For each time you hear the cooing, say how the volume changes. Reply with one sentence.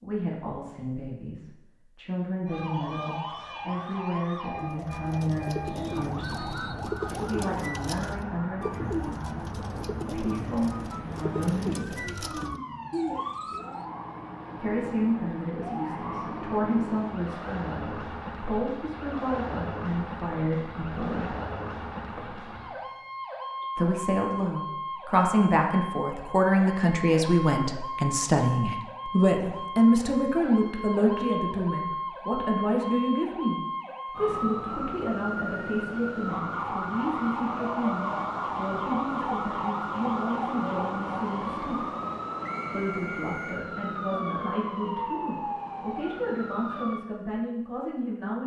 You can hear the cooing from 4.5 to 13.8 s, at a steady volume.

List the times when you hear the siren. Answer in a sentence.
The siren can be heard from 2.5 to 47.0 s.